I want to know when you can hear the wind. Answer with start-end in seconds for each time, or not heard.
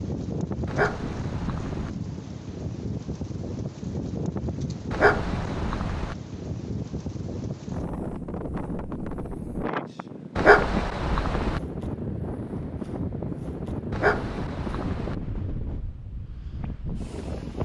0.0-17.5.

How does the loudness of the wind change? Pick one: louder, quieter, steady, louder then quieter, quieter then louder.
steady.